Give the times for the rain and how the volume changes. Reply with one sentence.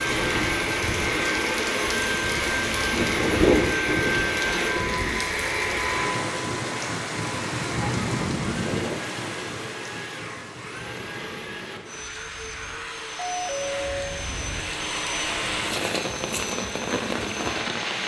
The rain can be heard from 0.0 to 18.0 s, getting quieter then louder.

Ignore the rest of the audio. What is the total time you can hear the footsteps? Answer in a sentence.
You can't hear the footsteps here.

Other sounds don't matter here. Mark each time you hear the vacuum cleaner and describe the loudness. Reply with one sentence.
The vacuum cleaner can be heard from 0.0 to 17.9 s, getting quieter.